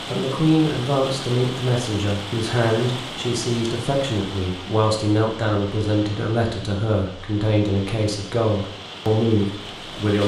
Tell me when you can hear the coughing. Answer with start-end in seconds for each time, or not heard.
not heard.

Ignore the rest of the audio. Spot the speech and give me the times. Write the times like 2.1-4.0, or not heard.
0.1-10.2.